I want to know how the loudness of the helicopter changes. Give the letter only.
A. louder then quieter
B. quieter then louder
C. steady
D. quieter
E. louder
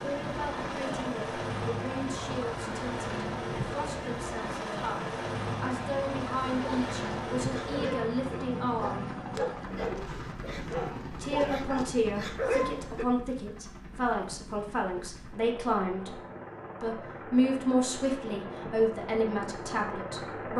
B.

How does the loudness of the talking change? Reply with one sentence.
The loudness of the talking goes up.